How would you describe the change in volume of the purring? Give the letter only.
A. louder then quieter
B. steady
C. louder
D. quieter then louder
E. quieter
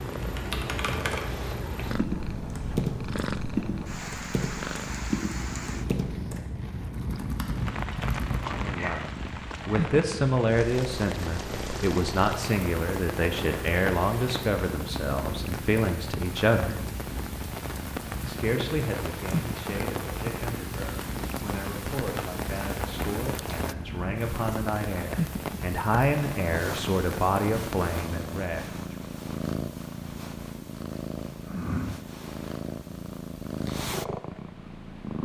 B.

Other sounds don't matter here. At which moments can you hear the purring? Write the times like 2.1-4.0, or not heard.
0.0-35.2.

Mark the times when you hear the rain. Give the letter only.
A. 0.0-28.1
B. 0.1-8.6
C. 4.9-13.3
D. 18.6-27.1
A.